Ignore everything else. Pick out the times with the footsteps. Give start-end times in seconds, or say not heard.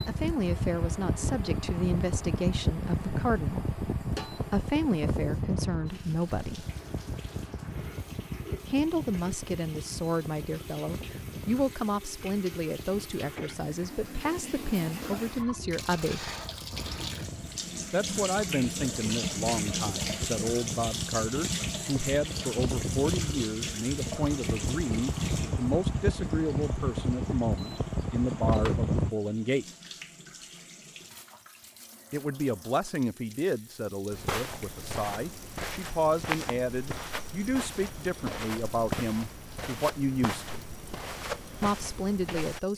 34.1-42.6.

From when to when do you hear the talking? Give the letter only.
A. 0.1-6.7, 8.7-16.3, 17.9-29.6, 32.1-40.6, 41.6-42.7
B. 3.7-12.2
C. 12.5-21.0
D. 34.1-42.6
A.